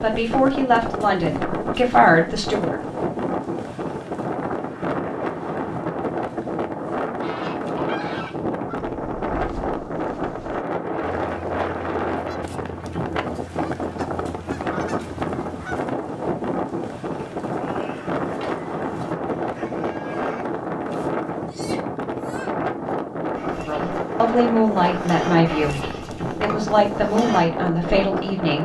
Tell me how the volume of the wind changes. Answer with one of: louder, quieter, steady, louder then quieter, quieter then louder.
steady.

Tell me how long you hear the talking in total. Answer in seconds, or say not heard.
8 s.